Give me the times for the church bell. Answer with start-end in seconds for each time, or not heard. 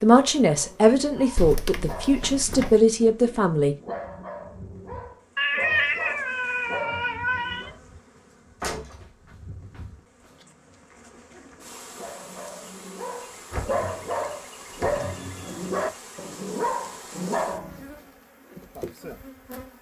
not heard.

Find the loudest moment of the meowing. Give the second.
6 s.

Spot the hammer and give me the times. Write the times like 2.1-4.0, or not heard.
not heard.